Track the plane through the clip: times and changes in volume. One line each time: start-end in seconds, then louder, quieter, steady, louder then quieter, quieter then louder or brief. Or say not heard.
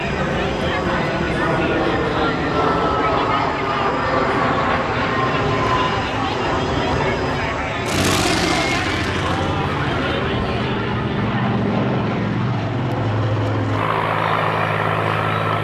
0.0-15.6 steady.